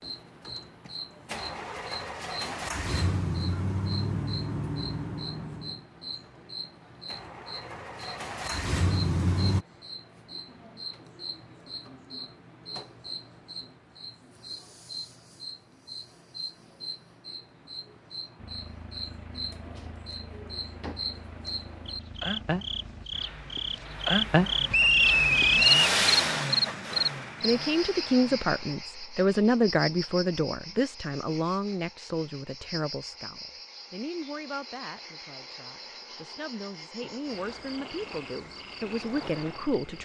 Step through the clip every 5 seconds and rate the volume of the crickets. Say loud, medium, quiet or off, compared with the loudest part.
quiet, quiet, quiet, quiet, loud, loud, quiet, quiet.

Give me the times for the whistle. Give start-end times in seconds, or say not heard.
24.7-25.9.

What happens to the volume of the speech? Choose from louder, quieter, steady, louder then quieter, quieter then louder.
quieter then louder.